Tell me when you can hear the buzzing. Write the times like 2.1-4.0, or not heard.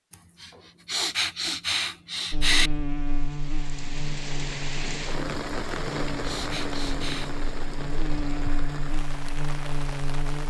2.3-10.4.